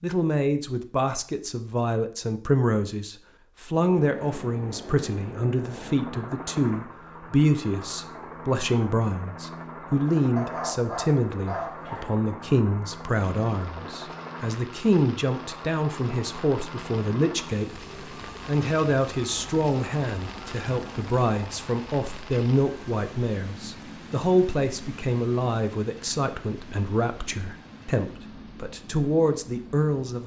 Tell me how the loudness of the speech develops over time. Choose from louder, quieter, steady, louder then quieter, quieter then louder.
steady.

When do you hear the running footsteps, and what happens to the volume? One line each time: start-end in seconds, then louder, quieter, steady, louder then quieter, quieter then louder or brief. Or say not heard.
not heard.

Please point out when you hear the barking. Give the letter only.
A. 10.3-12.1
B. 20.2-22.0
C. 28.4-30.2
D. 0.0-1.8
A.